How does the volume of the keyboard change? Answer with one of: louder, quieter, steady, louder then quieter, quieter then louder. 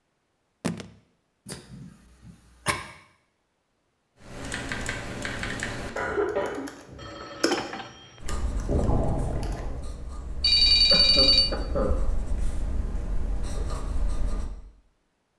quieter then louder.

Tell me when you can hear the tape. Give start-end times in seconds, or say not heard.
not heard.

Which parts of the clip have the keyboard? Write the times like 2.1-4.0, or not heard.
4.2-9.6.